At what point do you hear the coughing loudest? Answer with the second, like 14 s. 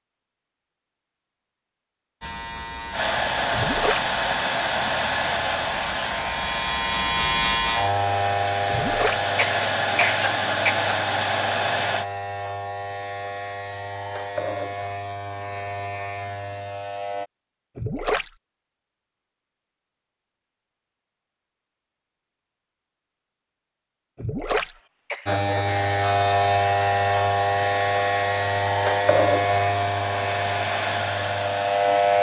10 s.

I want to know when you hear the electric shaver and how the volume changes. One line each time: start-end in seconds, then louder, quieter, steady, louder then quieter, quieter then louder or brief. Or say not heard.
2.2-17.3 louder then quieter
25.2-32.1 quieter.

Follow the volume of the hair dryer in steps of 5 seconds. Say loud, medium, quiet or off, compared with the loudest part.
loud, loud, loud, off, off, medium, medium.